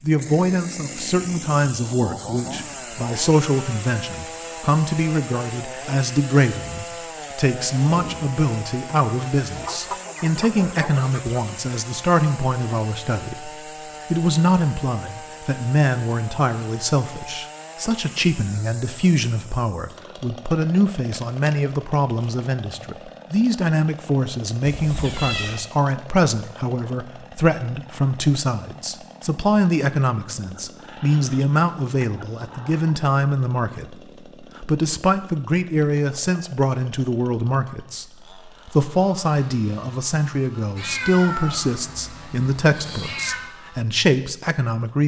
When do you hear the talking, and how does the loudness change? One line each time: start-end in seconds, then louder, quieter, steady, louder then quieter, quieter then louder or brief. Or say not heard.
0.0-45.0 steady.